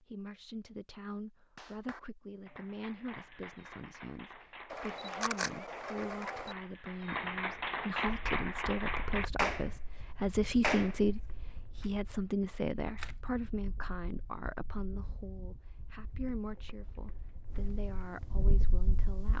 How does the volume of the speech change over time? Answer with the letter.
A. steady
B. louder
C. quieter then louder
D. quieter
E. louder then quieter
E.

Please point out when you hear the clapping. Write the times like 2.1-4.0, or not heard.
1.6-11.8.